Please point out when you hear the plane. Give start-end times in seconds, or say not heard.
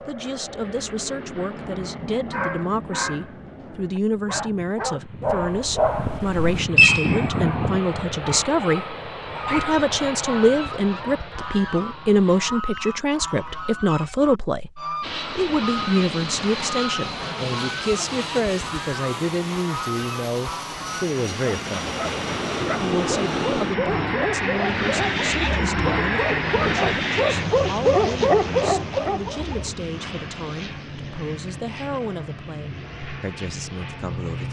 0.0-12.4, 15.0-34.4.